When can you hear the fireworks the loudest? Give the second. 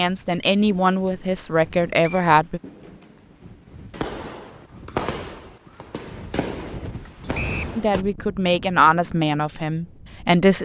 5 s.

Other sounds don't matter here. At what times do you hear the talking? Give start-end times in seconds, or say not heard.
0.0-2.6, 7.8-10.6.